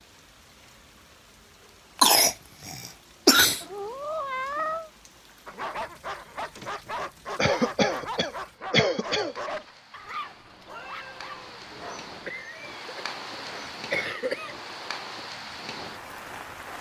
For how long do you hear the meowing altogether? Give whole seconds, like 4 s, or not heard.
3 s.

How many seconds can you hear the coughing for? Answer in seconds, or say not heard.
6 s.